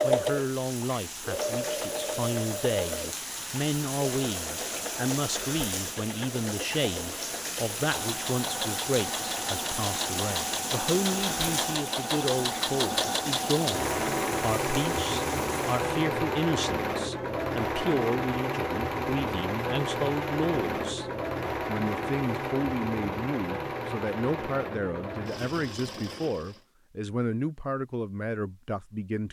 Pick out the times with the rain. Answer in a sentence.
The rain can be heard from 0.0 to 16.0 s.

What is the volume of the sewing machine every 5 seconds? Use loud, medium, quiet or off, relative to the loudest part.
loud, medium, loud, loud, loud, medium.